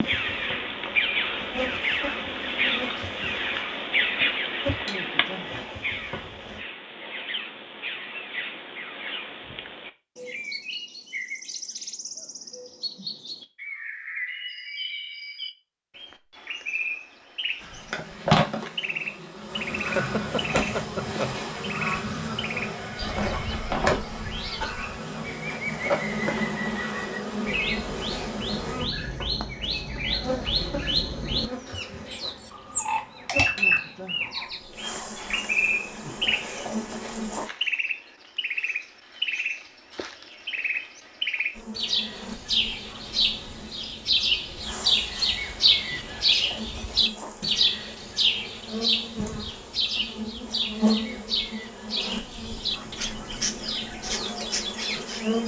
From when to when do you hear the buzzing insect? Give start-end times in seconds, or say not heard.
0.0-6.6, 17.6-37.5, 41.5-55.4.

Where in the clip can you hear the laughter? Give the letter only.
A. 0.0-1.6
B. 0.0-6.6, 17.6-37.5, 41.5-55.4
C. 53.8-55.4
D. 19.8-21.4
D.